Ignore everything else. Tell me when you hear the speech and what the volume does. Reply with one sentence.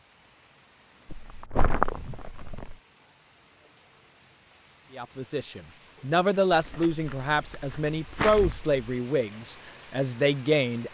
The speech can be heard from 5.0 to 10.8 s, at a steady volume.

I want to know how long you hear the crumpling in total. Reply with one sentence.
The crumpling can be heard for 4 seconds in total.